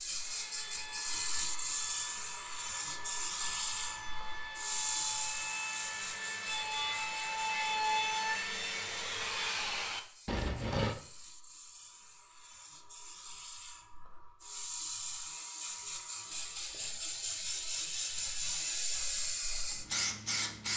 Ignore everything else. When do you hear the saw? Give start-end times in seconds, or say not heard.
0.1-10.9.